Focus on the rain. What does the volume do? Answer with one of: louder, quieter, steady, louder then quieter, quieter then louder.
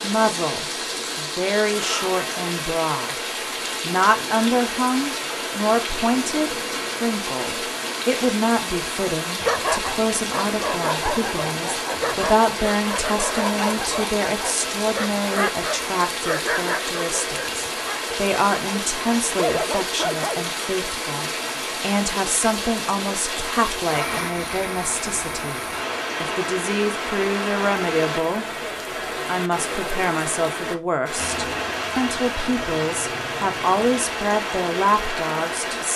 steady.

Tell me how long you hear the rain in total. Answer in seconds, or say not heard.
36 s.